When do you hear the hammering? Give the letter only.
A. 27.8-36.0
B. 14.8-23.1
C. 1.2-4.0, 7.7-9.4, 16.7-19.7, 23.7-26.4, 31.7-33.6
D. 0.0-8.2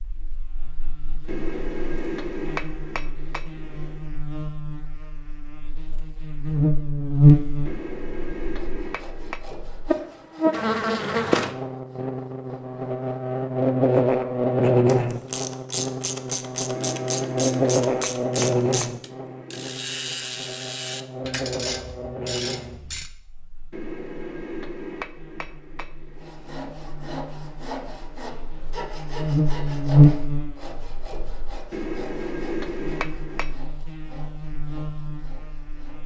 C.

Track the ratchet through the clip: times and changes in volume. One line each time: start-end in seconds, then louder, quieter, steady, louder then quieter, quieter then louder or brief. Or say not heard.
14.8-23.1 steady.